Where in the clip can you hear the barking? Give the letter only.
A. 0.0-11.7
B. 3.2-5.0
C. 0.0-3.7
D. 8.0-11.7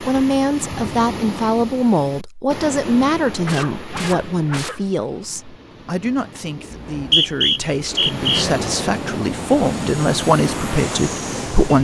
B.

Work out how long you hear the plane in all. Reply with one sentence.
The plane can be heard for 4 seconds in total.